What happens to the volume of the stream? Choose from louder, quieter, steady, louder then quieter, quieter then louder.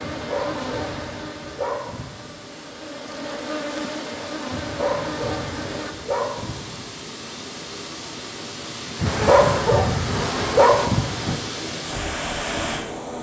louder.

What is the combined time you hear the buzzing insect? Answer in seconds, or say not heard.
8 s.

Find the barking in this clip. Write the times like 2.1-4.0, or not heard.
0.0-2.4, 4.5-6.8, 8.9-11.4.